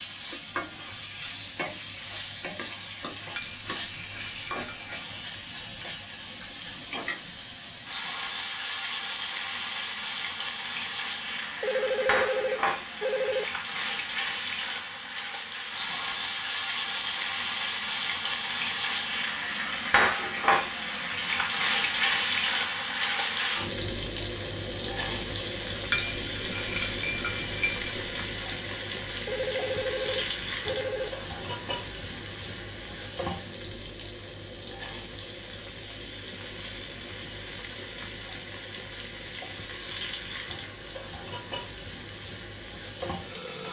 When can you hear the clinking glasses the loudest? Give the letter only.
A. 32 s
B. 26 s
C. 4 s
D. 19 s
B.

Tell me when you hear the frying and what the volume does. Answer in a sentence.
You can hear the frying from 0.0 to 43.6 s, getting louder then quieter.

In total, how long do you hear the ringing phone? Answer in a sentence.
You can hear the ringing phone for 4 seconds altogether.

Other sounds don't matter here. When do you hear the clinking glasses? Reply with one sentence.
The clinking glasses can be heard from 3.4 to 4.9 s and from 25.9 to 27.9 s.